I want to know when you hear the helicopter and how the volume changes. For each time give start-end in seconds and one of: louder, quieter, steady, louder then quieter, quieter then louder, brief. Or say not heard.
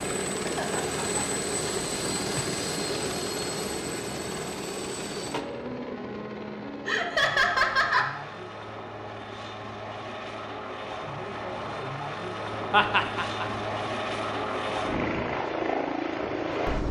0.0-16.8 quieter then louder.